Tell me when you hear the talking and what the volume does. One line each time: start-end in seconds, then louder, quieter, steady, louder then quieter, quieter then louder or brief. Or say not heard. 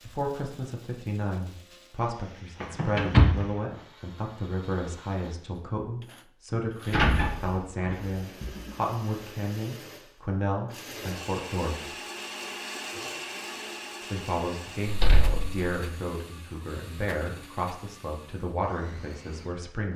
0.0-11.9 steady
14.0-19.9 steady.